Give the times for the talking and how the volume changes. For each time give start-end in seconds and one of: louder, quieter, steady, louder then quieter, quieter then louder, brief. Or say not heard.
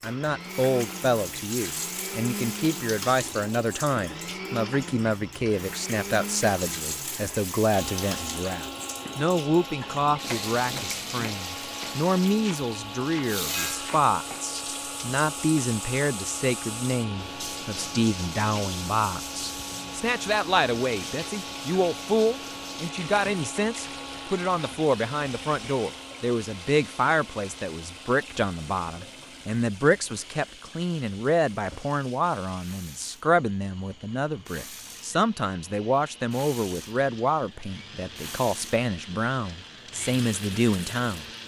0.0-41.2 steady.